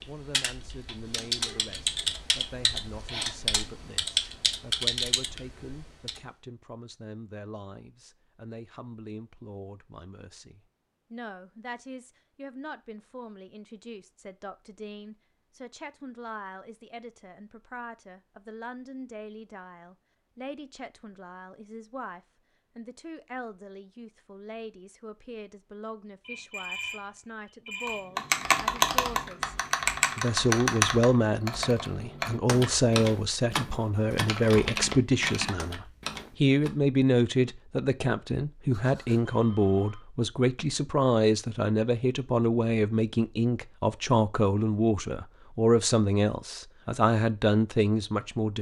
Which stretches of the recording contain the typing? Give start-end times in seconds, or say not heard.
0.0-6.2, 27.9-36.7.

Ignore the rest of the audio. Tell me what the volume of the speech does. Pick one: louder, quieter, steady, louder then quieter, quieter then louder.
louder.